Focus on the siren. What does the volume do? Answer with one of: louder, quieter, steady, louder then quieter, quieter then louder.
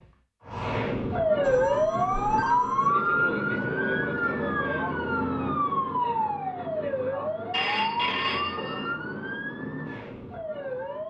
quieter.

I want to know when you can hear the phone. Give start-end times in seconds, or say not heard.
1.4-2.9, 7.5-8.9.